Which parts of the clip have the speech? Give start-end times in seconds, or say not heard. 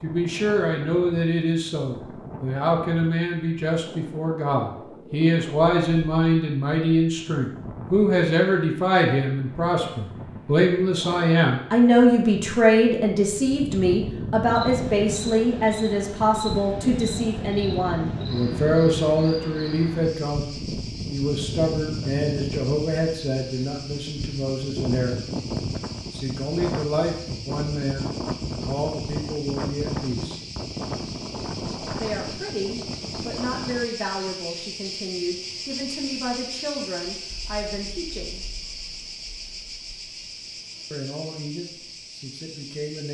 0.0-25.2, 26.1-30.4, 32.0-38.4, 40.9-43.0.